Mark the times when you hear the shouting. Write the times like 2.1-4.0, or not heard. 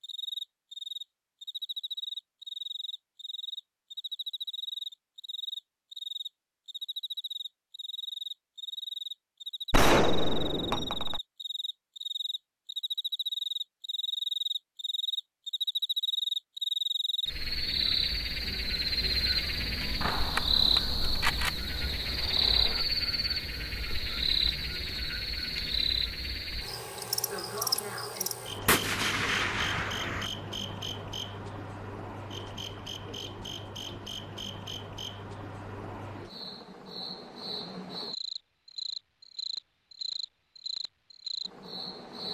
not heard.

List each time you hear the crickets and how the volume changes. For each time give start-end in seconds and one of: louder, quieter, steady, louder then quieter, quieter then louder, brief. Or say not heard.
0.0-42.2 louder then quieter.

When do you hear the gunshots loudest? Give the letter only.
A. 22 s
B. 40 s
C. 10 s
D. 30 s
C.